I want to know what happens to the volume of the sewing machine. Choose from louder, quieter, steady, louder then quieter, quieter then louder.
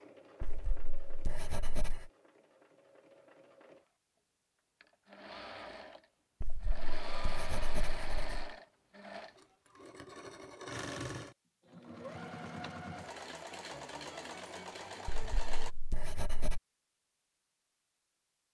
louder.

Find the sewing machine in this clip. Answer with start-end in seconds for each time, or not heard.
0.0-15.8.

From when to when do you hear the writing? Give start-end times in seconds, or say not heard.
0.4-2.1, 6.4-8.5, 15.1-16.6.